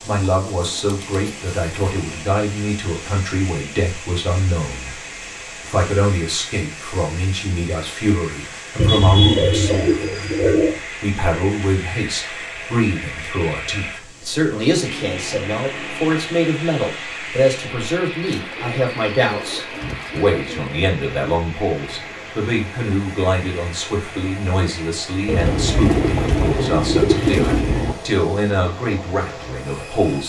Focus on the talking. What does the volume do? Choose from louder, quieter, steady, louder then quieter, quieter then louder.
steady.